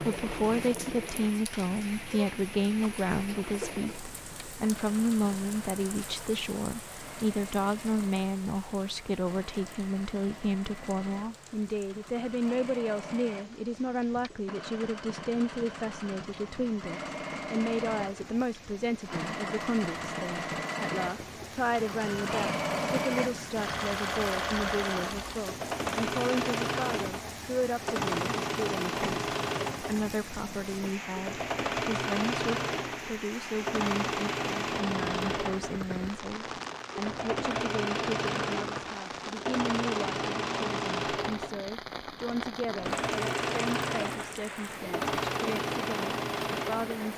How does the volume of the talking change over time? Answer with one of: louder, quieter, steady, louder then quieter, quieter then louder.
quieter.